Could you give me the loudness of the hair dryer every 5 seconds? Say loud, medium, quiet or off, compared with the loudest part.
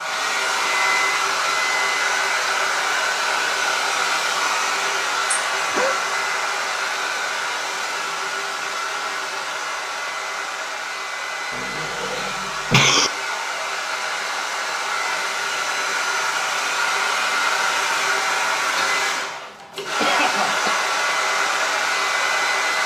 loud, loud, medium, loud, loud.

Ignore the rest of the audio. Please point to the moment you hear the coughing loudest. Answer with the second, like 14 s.
13 s.